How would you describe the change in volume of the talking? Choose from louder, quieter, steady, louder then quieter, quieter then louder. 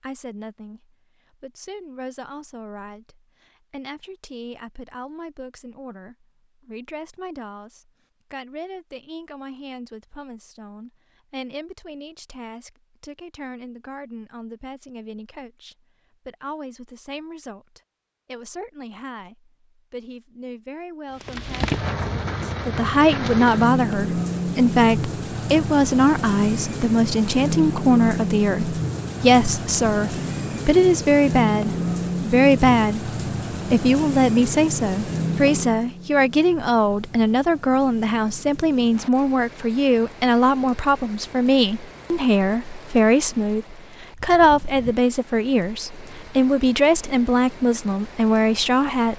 louder.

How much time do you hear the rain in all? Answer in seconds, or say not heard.
28 s.